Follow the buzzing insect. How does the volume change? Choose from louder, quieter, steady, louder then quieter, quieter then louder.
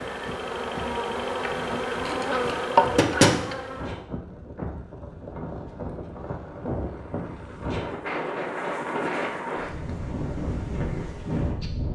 louder then quieter.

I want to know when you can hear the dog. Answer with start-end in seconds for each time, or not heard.
not heard.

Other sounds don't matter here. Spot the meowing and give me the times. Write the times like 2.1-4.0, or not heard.
not heard.